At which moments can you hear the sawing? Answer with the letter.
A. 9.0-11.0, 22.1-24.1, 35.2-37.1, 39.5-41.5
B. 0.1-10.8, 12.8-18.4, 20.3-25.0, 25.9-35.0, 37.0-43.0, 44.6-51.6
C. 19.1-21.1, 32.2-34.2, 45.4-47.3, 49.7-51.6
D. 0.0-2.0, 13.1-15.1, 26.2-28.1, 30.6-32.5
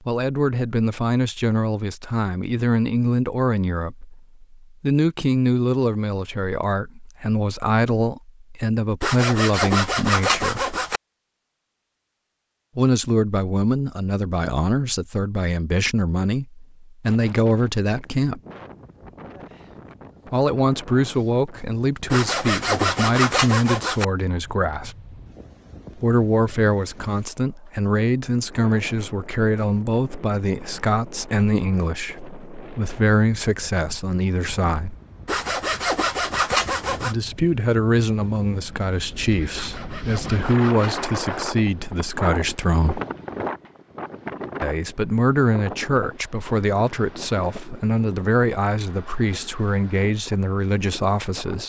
A.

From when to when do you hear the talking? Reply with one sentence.
You can hear the talking from 0.1 to 10.8 s, from 12.8 to 18.4 s, from 20.3 to 25.0 s, from 25.9 to 35.0 s, from 37.0 to 43.0 s and from 44.6 to 51.6 s.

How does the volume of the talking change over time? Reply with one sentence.
The volume of the talking stays about the same.